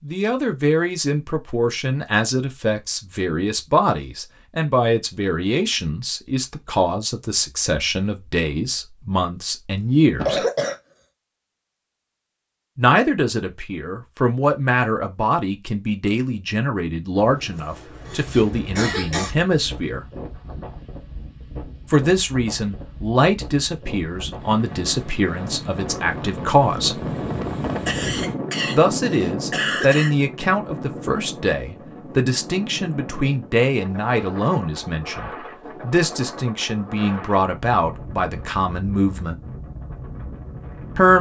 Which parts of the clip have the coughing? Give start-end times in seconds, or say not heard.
10.2-10.8, 17.6-19.3, 27.9-30.1.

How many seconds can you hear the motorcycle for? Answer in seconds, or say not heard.
not heard.